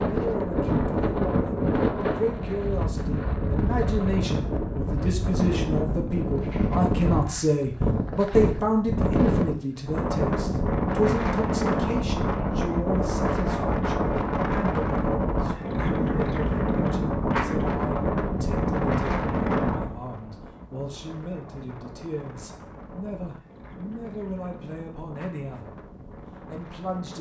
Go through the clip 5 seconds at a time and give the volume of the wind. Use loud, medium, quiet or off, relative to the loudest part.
loud, loud, loud, loud, quiet, quiet.